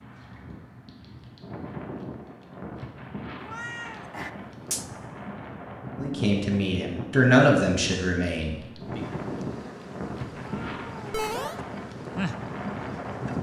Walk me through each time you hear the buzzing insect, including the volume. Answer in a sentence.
You can hear the buzzing insect from 8.8 to 13.3 s, getting louder.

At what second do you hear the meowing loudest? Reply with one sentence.
The volume of the meowing peaks at 11 seconds.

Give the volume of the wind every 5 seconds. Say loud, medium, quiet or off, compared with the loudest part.
medium, loud, loud.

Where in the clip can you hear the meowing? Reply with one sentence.
The meowing can be heard from 3.4 to 4.9 s and from 10.4 to 11.6 s.